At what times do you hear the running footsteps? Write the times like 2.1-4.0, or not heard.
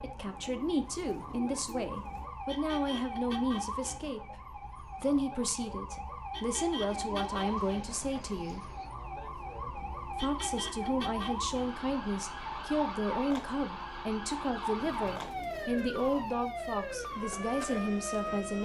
not heard.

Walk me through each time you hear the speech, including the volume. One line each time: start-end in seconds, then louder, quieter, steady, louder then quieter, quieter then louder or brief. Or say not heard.
0.0-8.7 steady
10.2-18.6 steady.